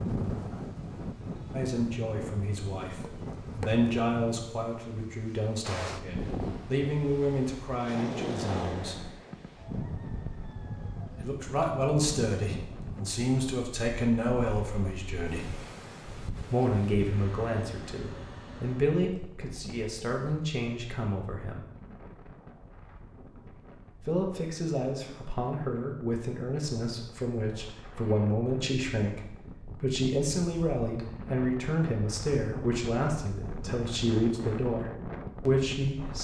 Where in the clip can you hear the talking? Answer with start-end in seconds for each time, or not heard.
1.5-9.1, 11.2-15.6, 16.5-21.6, 24.0-36.1.